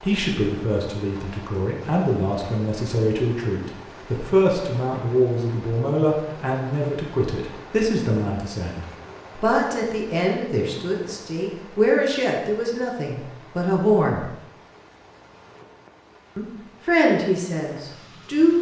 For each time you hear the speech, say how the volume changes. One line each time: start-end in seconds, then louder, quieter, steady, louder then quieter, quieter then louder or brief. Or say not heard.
0.0-14.2 steady
16.4-18.5 brief.